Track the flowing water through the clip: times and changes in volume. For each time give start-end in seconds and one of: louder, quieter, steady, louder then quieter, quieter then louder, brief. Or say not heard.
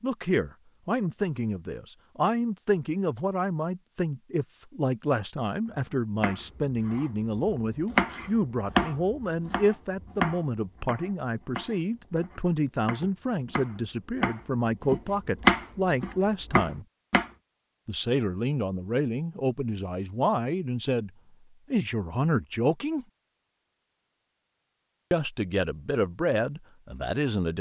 not heard.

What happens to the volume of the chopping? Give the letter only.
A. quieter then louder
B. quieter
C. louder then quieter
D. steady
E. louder
A.